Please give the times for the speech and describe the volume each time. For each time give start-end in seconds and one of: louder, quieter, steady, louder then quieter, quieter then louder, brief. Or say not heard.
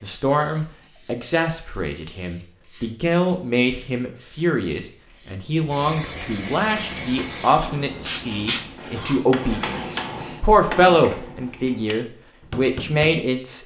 0.0-13.6 louder.